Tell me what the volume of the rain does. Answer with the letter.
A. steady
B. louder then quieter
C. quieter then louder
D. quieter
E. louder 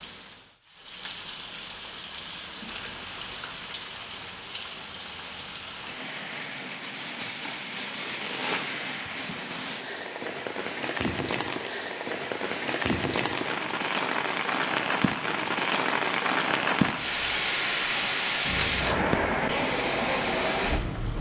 E.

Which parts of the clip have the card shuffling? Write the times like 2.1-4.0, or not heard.
2.6-3.6, 7.4-8.7, 18.4-19.1.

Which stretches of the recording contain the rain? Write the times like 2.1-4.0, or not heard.
0.0-21.1.